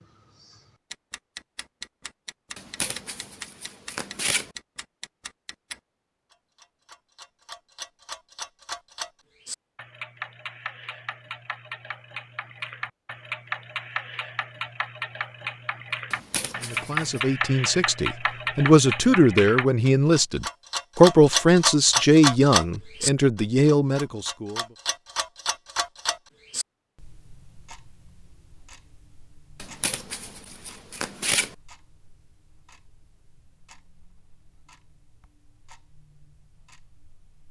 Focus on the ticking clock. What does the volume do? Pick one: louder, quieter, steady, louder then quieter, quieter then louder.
louder then quieter.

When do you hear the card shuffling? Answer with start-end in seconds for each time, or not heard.
2.5-4.5, 16.1-17.2, 29.6-31.6.